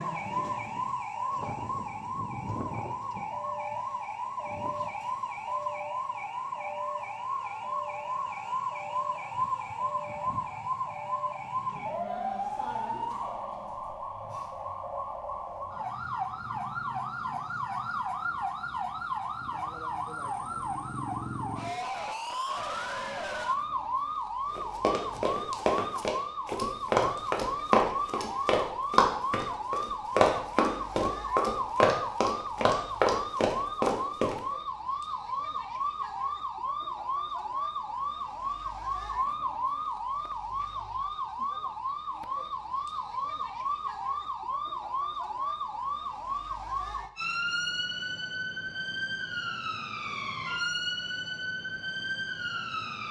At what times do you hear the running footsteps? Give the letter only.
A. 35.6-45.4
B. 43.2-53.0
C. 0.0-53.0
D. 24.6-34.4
D.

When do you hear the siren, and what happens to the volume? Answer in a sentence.
You can hear the siren from 0.0 to 53.0 s, at a steady volume.